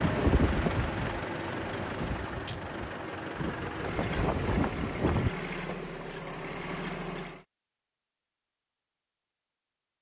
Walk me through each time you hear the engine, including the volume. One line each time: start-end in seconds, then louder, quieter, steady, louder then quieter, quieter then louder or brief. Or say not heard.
0.0-7.5 steady.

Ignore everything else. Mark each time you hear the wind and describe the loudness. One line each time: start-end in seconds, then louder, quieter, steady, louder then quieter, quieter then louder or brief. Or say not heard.
0.0-5.3 quieter then louder.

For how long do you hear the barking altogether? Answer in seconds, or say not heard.
not heard.